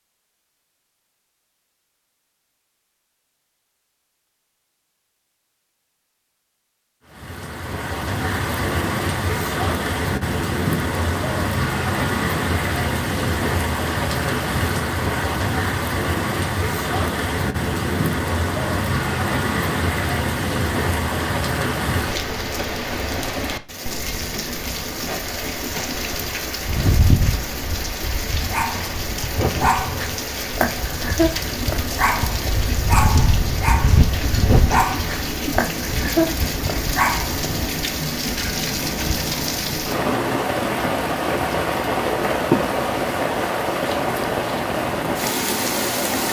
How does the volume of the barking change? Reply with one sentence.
The volume of the barking stays about the same.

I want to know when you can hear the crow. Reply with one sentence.
You can't hear the crow here.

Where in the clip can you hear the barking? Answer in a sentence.
You can hear the barking from 28.4 to 37.5 s.